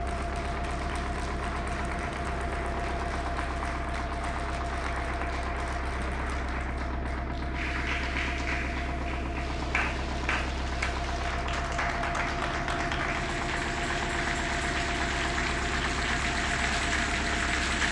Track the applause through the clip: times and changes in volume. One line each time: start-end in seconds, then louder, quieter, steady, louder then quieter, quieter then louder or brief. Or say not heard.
0.0-17.8 louder.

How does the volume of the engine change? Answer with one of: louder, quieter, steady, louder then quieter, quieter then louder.
steady.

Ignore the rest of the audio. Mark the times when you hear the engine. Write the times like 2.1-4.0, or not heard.
0.0-17.8.